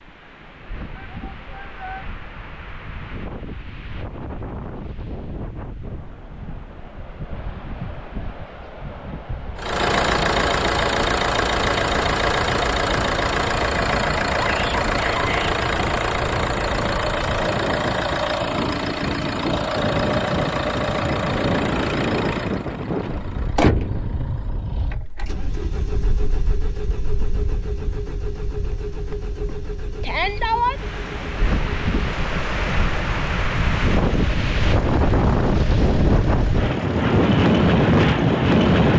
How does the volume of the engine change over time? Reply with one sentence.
The volume of the engine goes down.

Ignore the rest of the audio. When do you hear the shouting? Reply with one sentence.
You can hear the shouting from 0.9 to 2.0 s, from 14.3 to 15.6 s and from 30.0 to 30.8 s.